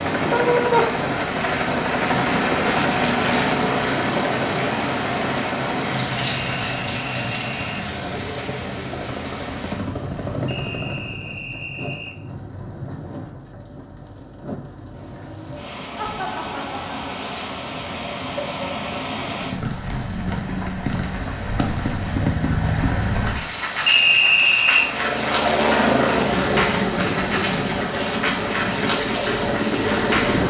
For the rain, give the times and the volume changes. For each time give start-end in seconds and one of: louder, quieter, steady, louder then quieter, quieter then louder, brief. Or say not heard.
0.0-30.4 quieter then louder.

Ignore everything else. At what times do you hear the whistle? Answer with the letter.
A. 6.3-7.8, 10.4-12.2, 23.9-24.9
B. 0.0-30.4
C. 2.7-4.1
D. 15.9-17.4
A.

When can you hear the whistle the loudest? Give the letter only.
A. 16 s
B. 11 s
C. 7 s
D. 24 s
D.